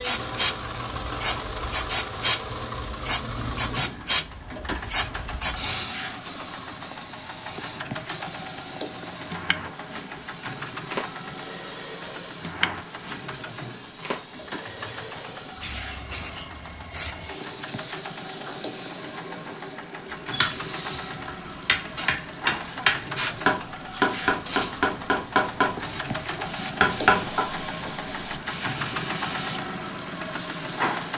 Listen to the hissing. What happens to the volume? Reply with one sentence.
The loudness of the hissing goes down.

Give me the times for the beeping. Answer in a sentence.
The beeping can be heard from 15.8 to 17.4 s.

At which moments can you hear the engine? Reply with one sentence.
You can hear the engine from 0.0 to 31.1 s.